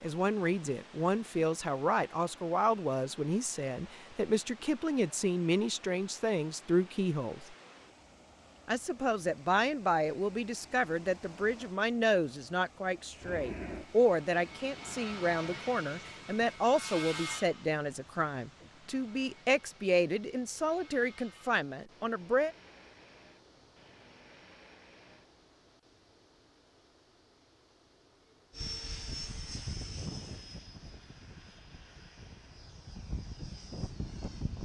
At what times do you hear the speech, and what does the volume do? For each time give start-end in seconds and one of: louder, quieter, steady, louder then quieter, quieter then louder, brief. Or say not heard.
0.0-7.5 steady
8.7-22.6 steady.